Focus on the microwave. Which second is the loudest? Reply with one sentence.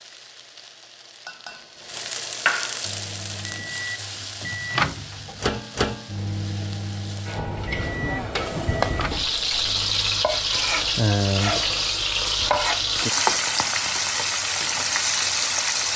The volume of the microwave peaks at 5 seconds.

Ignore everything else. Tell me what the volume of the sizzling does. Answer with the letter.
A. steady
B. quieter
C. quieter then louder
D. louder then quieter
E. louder
C.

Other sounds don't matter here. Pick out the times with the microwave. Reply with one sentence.
The microwave can be heard from 2.9 to 10.2 s.